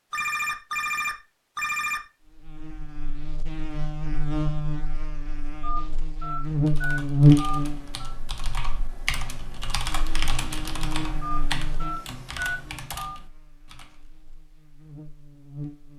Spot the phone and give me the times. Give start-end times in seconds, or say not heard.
0.1-2.0, 5.6-8.1, 11.2-13.2.